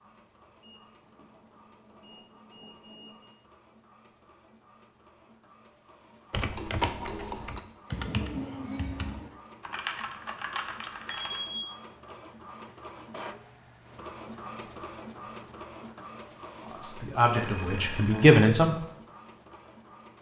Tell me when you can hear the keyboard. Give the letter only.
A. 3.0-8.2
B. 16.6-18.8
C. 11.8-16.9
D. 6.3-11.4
D.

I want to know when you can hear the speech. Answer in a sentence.
The speech can be heard from 16.6 to 18.8 s.